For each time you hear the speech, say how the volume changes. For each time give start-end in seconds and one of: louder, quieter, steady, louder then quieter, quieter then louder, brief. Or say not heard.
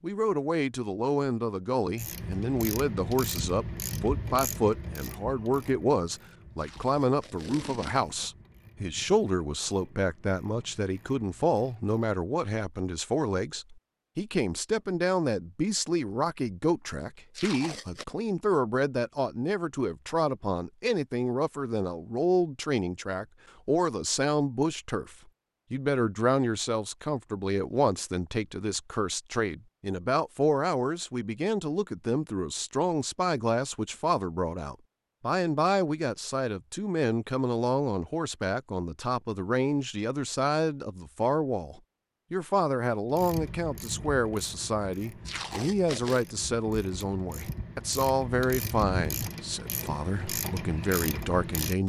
0.0-51.8 steady.